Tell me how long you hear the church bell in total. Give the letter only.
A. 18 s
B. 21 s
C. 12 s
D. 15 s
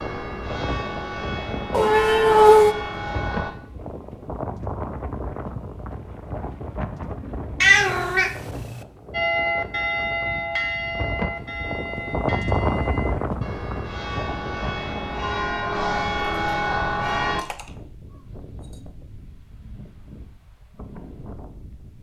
C.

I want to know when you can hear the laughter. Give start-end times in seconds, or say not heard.
not heard.